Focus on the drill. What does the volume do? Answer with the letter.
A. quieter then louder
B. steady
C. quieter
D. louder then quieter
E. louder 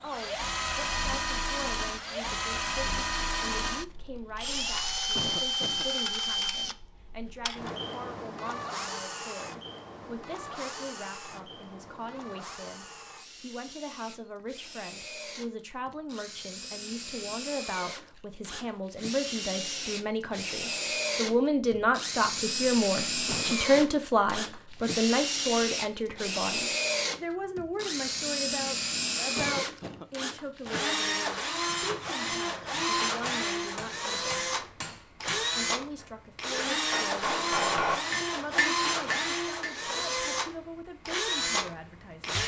A.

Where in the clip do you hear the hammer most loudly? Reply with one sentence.
The volume of the hammer peaks at 38 seconds.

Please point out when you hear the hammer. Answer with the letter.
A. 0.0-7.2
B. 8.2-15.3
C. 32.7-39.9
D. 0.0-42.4
C.